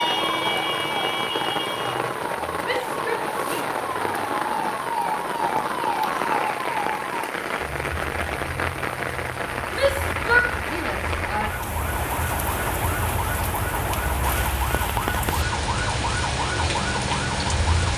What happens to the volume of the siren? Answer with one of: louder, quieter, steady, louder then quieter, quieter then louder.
quieter then louder.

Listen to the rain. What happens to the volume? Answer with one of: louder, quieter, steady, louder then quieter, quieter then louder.
steady.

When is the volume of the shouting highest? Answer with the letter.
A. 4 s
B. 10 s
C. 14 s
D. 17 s
B.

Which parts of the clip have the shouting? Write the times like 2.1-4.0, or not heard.
2.6-3.7, 9.7-11.5.